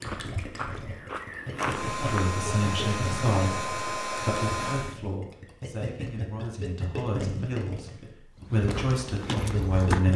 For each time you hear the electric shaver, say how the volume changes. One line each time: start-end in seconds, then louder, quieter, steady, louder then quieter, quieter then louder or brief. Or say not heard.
not heard.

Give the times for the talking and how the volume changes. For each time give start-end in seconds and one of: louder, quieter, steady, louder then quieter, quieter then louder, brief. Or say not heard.
1.9-10.1 quieter then louder.